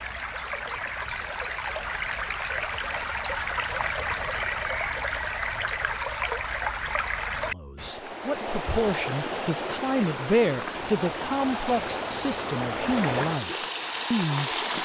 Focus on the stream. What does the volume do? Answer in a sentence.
The volume of the stream stays about the same.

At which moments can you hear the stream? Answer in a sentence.
The stream can be heard from 0.0 to 14.8 s.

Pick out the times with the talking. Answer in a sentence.
You can hear the talking from 7.4 to 14.8 s.